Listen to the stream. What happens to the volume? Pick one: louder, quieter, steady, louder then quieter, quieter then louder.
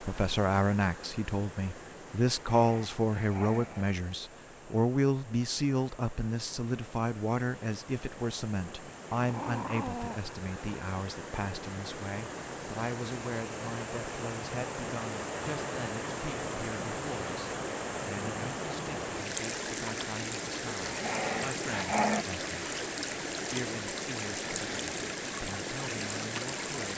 louder.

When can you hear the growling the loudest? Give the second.
22 s.